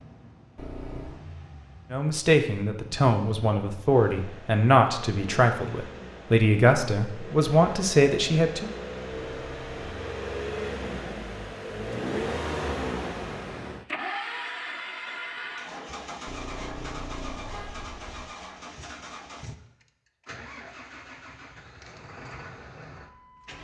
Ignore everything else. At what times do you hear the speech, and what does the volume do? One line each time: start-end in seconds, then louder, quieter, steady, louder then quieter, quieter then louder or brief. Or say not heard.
1.9-8.7 steady.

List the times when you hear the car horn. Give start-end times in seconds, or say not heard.
0.6-1.2, 9.2-10.0, 16.2-18.2.